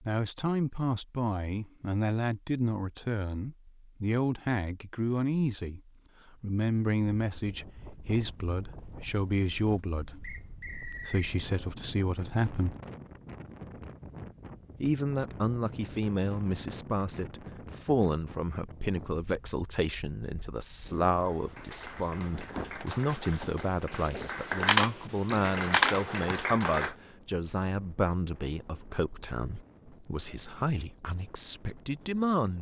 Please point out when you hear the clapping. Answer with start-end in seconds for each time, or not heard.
21.4-26.9.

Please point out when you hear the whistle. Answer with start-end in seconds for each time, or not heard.
10.2-11.3.